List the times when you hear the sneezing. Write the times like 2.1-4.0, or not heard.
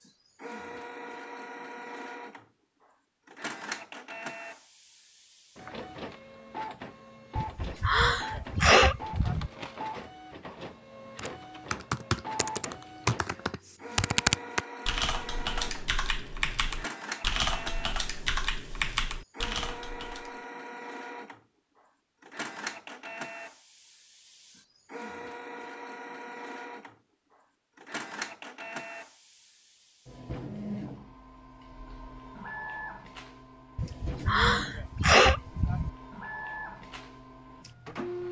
7.3-9.5, 33.8-35.9.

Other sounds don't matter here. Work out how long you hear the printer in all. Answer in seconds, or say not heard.
38 s.